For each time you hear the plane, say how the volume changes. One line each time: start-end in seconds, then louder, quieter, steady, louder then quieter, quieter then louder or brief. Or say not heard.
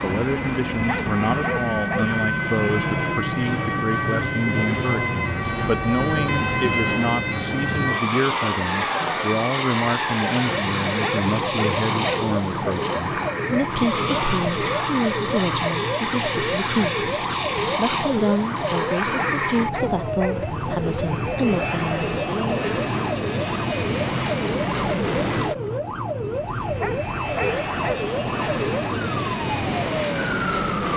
0.0-30.9 steady.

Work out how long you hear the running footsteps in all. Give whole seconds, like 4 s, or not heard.
not heard.